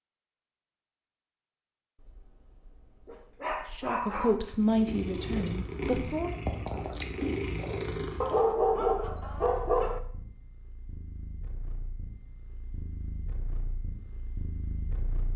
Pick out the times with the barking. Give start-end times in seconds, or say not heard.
2.0-4.6, 8.2-10.0.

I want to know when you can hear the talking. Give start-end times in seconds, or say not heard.
3.7-6.3.